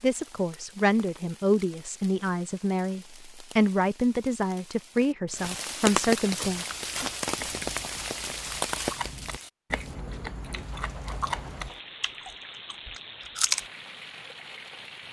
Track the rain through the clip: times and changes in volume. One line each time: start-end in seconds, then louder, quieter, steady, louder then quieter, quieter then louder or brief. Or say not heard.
0.0-15.0 louder then quieter.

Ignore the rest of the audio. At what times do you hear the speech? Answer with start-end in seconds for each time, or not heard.
0.0-6.7.